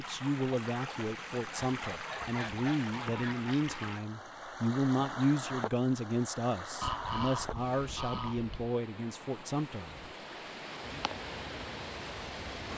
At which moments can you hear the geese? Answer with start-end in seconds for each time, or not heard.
1.5-3.5, 6.8-8.7.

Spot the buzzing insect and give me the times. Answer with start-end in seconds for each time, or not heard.
10.8-12.7.